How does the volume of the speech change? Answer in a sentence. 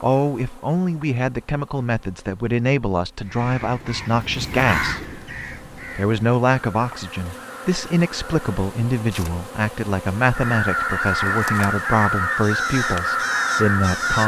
The loudness of the speech stays about the same.